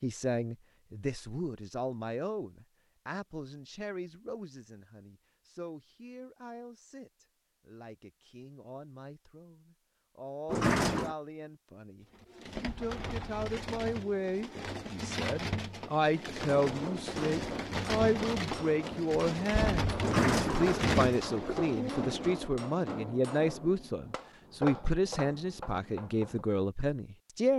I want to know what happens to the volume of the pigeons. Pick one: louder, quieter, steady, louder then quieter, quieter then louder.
louder.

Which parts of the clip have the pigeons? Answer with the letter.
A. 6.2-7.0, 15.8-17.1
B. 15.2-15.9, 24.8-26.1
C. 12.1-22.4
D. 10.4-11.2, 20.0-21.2
C.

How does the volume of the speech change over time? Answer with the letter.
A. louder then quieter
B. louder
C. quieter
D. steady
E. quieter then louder
E.